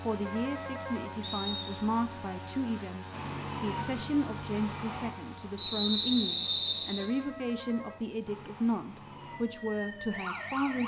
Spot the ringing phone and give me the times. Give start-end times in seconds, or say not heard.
0.2-1.2, 7.0-8.1.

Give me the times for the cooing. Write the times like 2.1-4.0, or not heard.
not heard.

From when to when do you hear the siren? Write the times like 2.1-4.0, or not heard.
3.1-5.1, 8.2-10.8.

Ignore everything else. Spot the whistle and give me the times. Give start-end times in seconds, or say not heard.
1.2-1.8, 5.5-7.0.